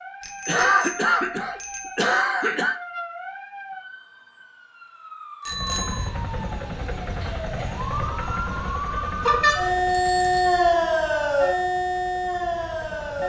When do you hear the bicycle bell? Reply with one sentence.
The bicycle bell can be heard from 0.2 to 2.0 s, from 5.5 to 6.1 s and from 9.2 to 10.7 s.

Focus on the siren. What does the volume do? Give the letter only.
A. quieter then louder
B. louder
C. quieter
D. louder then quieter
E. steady
B.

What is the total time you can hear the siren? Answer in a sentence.
The siren can be heard for 13 seconds in total.